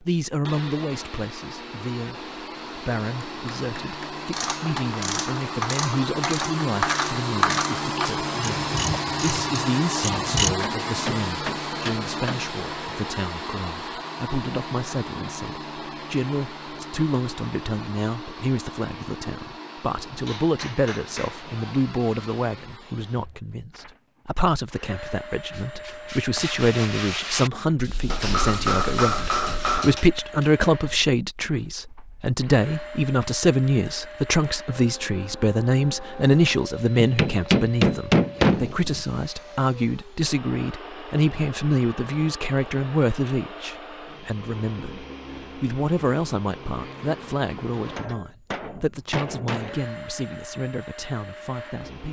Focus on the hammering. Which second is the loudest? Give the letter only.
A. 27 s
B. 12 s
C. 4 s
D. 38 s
D.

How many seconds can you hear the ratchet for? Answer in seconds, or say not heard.
6 s.